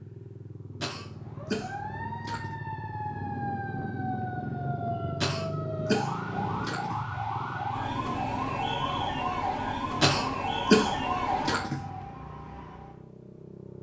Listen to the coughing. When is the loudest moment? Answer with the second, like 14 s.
11 s.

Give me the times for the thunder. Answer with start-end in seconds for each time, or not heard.
3.0-6.7.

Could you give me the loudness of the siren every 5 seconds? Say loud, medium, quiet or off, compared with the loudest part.
medium, loud, loud.